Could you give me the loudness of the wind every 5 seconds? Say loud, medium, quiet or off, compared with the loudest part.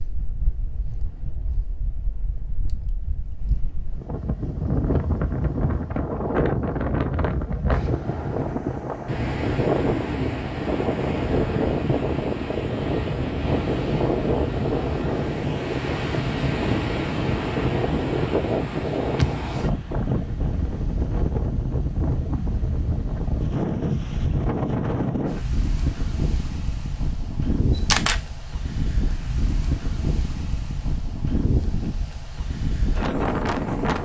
medium, loud, loud, loud, loud, medium, loud.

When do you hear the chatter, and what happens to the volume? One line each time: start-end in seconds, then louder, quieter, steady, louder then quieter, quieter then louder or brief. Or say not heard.
not heard.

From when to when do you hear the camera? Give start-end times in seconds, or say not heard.
27.8-28.2.